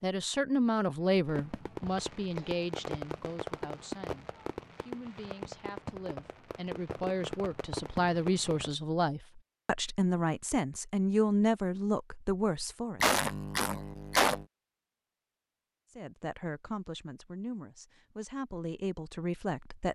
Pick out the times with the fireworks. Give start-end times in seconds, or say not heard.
1.2-8.8.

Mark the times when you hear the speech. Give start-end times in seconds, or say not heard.
0.0-13.0, 15.9-19.8.